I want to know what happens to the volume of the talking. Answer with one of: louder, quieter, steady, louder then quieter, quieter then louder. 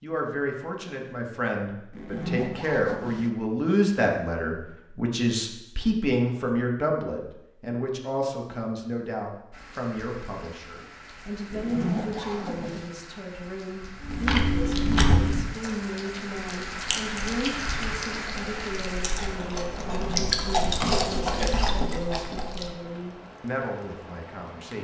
quieter.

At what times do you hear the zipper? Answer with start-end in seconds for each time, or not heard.
1.9-3.3, 11.5-12.9, 19.9-20.4.